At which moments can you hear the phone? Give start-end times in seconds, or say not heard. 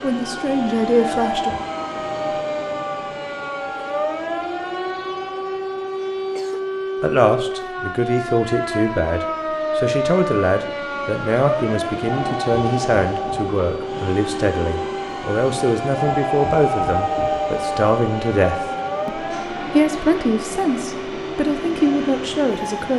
1.0-1.6, 12.0-13.5, 15.9-17.6.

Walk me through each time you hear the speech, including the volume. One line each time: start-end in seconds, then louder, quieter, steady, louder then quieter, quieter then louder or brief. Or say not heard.
0.0-1.5 brief
7.0-22.9 steady.